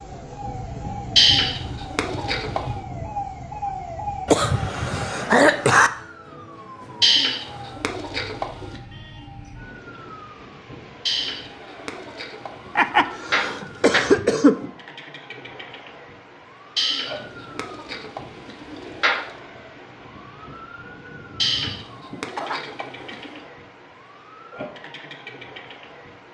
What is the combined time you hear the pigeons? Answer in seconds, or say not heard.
11 s.